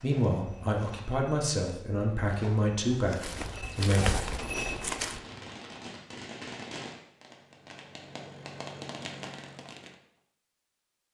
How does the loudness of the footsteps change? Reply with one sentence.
The loudness of the footsteps goes up.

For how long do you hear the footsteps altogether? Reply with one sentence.
You can hear the footsteps for 5 seconds altogether.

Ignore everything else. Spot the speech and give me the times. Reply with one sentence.
The speech can be heard from 0.0 to 4.2 s.